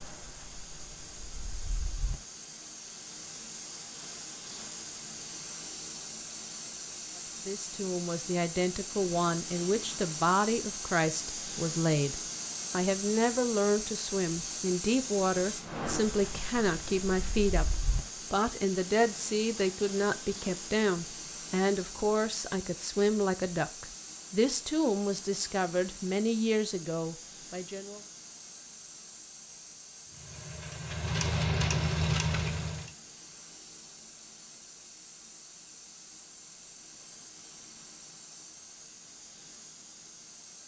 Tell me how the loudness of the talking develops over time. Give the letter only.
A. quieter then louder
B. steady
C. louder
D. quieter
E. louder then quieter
B.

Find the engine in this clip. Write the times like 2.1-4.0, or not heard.
30.1-32.9.